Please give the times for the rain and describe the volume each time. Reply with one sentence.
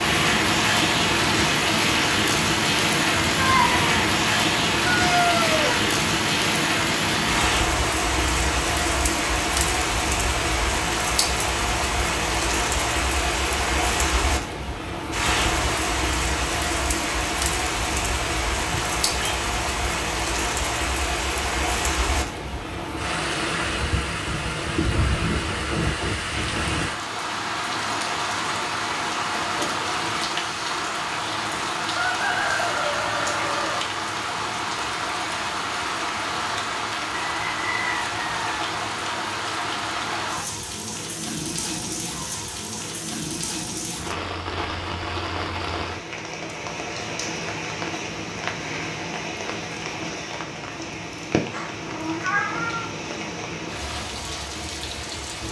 The rain can be heard from 0.0 to 55.4 s, getting quieter.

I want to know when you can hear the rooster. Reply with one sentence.
You can hear the rooster from 4.8 to 5.7 s, from 31.9 to 33.9 s and from 37.2 to 38.6 s.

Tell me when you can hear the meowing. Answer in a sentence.
You can hear the meowing from 3.4 to 4.0 s, from 18.7 to 19.2 s and from 51.5 to 52.9 s.